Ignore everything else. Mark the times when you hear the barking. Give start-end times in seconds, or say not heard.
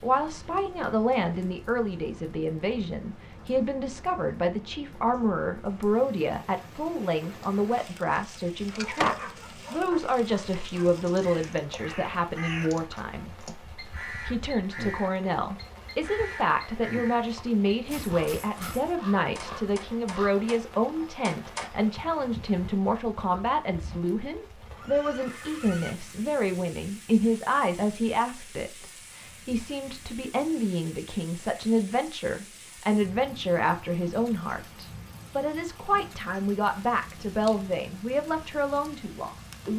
8.8-11.1.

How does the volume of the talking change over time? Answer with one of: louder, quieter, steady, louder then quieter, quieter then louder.
steady.